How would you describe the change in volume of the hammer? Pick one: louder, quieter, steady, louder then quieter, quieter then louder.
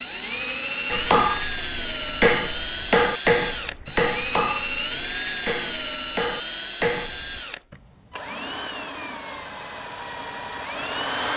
quieter then louder.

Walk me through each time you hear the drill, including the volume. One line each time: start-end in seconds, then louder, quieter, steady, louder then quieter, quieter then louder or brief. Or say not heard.
0.0-11.3 quieter.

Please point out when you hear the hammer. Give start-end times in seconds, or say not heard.
0.8-7.4.